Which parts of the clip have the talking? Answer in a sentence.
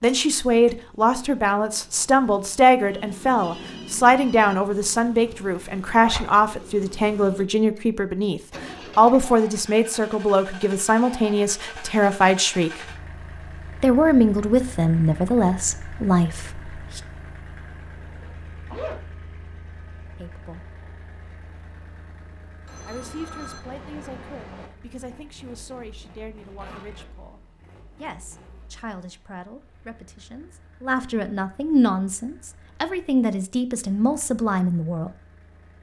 You can hear the talking from 0.0 to 12.8 s, from 13.8 to 17.0 s, from 20.1 to 20.6 s and from 22.9 to 35.1 s.